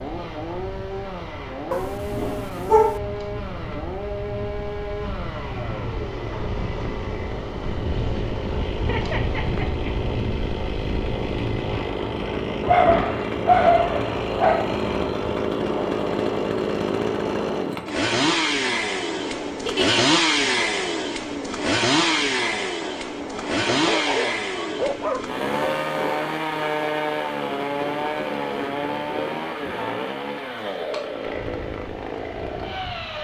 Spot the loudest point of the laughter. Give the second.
20 s.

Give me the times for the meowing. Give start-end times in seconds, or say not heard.
not heard.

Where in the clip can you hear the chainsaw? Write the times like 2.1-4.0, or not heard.
0.0-33.1.